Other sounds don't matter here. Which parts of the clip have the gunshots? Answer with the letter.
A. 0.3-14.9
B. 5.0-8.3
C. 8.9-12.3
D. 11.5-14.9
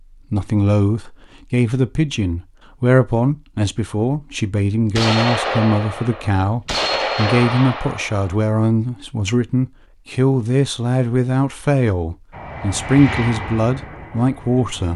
B.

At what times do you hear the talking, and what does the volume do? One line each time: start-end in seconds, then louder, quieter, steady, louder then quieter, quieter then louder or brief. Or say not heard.
0.3-14.9 steady.